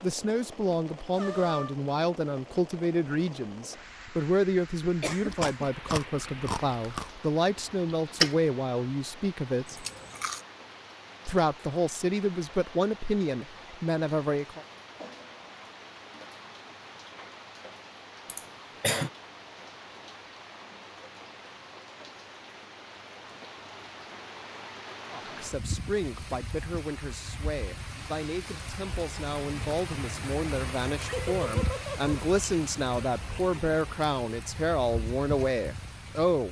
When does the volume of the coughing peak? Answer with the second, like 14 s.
19 s.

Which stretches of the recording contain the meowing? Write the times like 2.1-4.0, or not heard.
1.1-1.8, 31.1-32.1.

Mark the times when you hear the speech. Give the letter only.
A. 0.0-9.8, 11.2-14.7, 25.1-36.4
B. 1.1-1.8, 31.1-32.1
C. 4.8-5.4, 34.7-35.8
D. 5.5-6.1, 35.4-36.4
A.